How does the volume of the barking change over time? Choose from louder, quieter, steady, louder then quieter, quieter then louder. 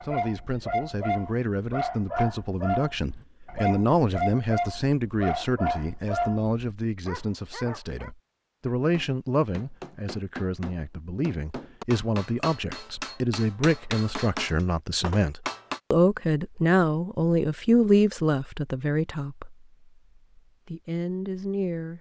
steady.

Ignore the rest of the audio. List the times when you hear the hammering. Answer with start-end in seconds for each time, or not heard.
8.9-15.8.